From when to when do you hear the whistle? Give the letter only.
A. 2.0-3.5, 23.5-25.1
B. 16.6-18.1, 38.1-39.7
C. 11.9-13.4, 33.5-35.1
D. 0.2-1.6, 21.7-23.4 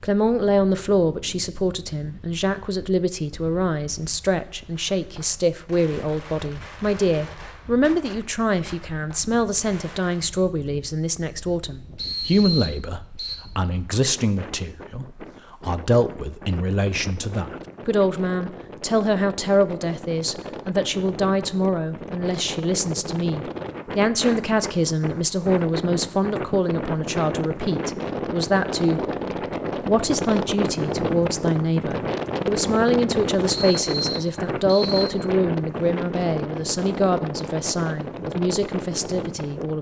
C.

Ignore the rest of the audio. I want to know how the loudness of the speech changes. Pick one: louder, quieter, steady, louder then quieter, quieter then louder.
steady.